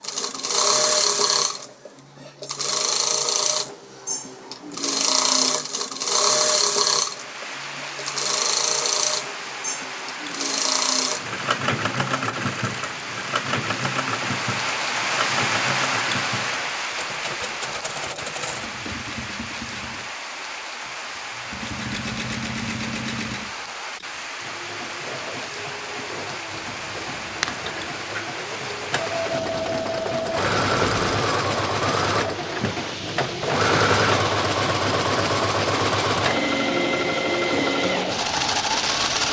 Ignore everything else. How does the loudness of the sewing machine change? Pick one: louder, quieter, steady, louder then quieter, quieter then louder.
quieter then louder.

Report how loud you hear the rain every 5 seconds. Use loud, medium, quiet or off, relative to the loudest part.
off, medium, loud, loud, medium, medium, medium, medium.